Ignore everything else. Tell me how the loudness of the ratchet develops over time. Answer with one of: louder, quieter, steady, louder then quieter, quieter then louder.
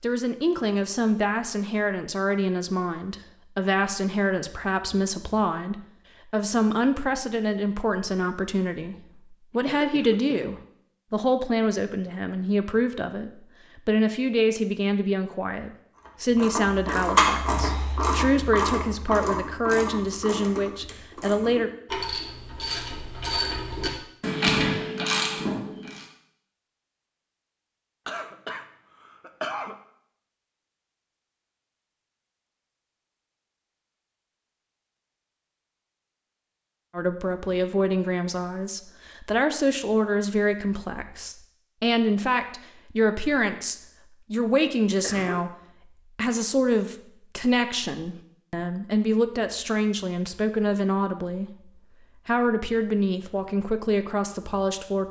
quieter then louder.